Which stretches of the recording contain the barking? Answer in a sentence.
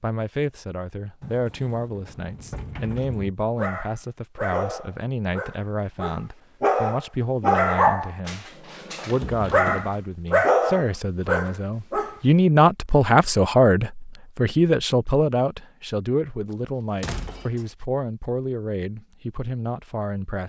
The barking can be heard from 3.5 to 12.2 s.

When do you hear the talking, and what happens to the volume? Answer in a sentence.
You can hear the talking from 0.0 to 20.4 s, getting louder then quieter.